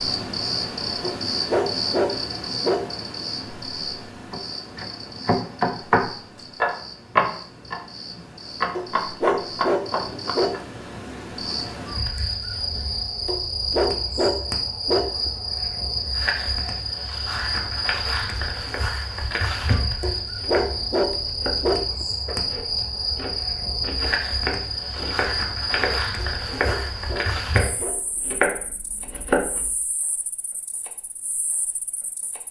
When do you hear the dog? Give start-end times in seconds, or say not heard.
1.0-3.0, 8.8-10.6, 13.2-15.3, 20.0-22.1, 26.1-28.2.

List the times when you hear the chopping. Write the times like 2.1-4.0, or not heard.
4.2-10.6, 18.5-29.7.